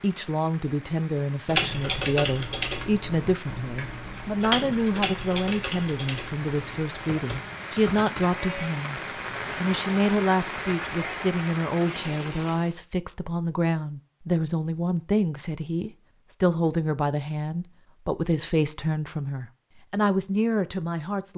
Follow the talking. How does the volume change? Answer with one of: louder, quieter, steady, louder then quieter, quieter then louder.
steady.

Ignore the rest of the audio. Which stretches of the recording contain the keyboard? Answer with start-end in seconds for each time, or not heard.
1.4-8.3.